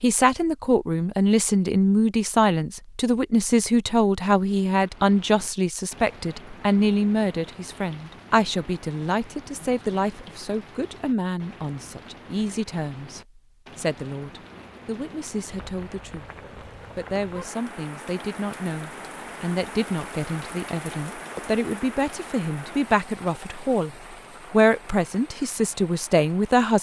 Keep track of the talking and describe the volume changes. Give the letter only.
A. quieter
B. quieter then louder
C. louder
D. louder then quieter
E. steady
B.